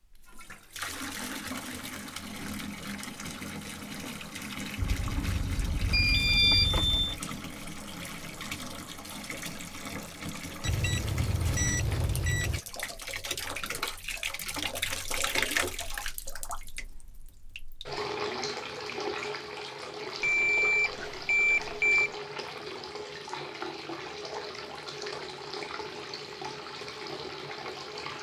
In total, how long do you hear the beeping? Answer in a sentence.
You can hear the beeping for 6 seconds altogether.